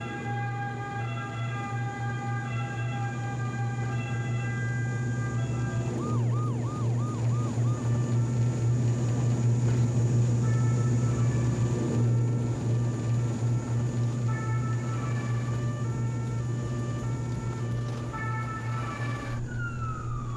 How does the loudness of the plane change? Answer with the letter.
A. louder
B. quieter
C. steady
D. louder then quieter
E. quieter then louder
D.